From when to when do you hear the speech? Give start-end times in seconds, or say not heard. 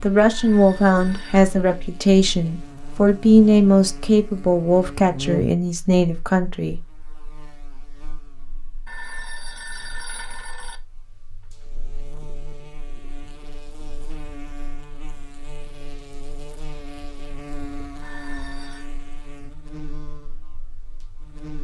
0.0-6.8.